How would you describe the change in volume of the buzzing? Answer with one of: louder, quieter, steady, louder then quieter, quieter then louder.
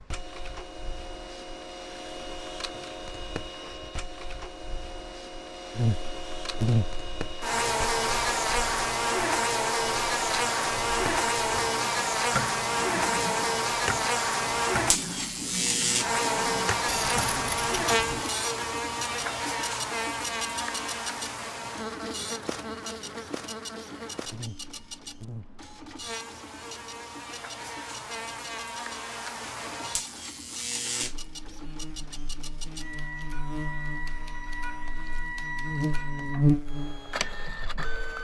quieter then louder.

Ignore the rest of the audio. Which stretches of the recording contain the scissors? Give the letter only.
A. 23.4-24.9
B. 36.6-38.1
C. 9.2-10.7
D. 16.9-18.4
D.